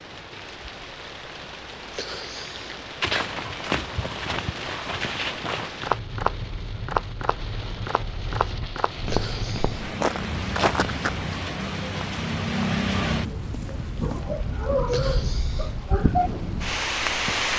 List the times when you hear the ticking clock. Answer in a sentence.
You can't hear the ticking clock here.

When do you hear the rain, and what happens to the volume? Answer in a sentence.
You can hear the rain from 0.0 to 17.5 s, getting louder.